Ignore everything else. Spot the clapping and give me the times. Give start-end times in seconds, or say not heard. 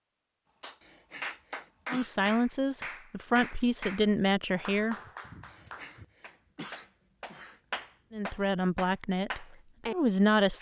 0.6-9.9.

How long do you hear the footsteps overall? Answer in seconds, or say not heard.
not heard.